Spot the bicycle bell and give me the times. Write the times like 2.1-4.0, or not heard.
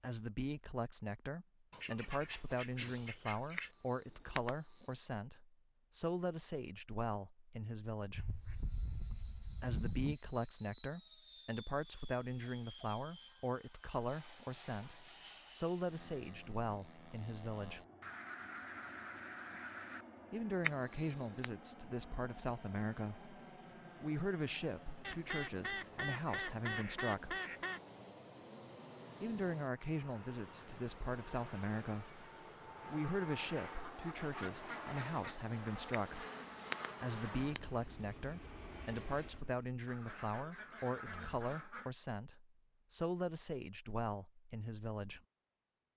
3.5-5.0, 20.6-21.5, 35.9-38.0.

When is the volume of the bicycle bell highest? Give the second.
21 s.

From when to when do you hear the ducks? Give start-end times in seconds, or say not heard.
1.7-3.7, 8.1-10.2, 18.0-20.1, 25.0-27.8, 33.8-35.4, 39.9-41.9.